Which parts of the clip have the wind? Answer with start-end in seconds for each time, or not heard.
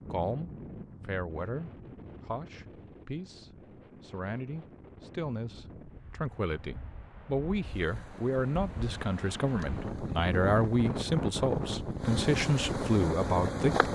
0.0-13.9.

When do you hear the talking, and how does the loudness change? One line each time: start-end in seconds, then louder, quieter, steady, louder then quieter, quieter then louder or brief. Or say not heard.
0.1-13.9 louder.